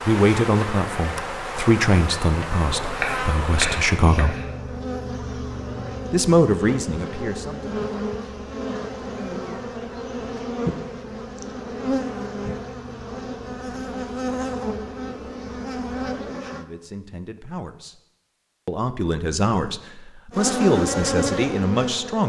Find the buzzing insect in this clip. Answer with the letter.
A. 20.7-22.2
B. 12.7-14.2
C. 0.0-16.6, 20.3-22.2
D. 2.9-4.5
C.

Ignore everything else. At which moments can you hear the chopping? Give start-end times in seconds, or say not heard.
2.9-4.5.